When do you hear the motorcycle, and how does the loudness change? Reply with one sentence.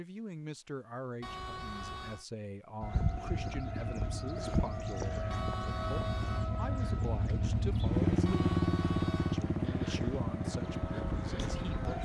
You can hear the motorcycle from 3.1 to 11.9 s, getting louder then quieter.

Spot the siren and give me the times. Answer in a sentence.
The siren can be heard from 2.8 to 11.9 s.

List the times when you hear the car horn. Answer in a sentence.
The car horn can be heard from 1.2 to 2.2 s, from 5.3 to 6.5 s and from 8.2 to 9.4 s.